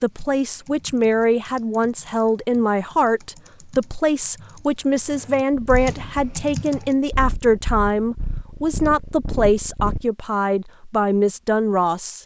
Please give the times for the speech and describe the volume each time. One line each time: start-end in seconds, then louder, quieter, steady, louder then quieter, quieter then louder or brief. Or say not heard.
0.0-12.2 steady.